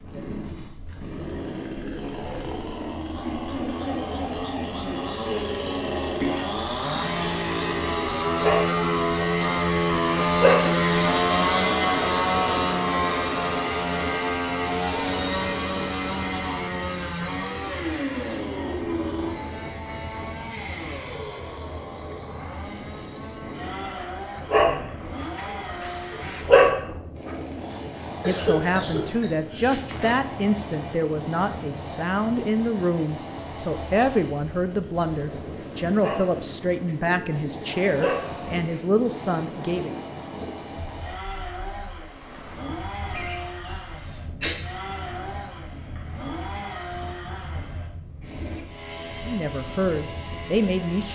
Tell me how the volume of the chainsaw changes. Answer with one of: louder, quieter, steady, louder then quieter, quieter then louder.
quieter.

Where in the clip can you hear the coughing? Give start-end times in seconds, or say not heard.
6.2-7.2, 28.2-30.1, 43.1-44.6.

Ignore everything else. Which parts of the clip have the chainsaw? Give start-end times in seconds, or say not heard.
0.0-51.1.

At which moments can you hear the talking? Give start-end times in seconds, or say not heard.
28.2-40.0, 49.2-51.1.